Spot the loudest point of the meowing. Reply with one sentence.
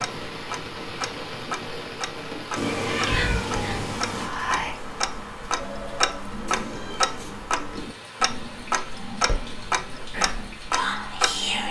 The loudest moment of the meowing is at 3 seconds.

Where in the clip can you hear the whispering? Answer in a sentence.
The whispering can be heard from 3.0 to 4.8 s and from 9.2 to 11.6 s.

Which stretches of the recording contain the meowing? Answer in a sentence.
You can hear the meowing from 2.5 to 4.3 s and from 6.5 to 7.5 s.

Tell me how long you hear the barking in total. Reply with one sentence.
You can't hear the barking here.